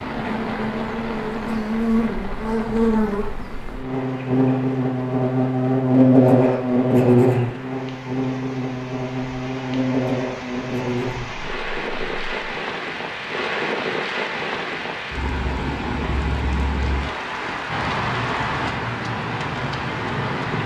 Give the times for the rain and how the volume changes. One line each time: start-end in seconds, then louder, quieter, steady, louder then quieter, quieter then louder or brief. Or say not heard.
0.0-20.6 quieter then louder.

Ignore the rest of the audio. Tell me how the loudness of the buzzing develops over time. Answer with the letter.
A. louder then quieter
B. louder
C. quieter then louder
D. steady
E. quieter
A.